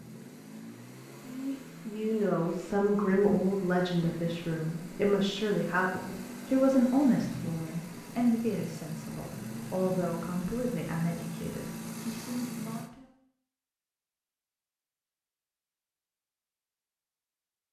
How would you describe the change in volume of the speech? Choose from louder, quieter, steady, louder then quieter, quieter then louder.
quieter.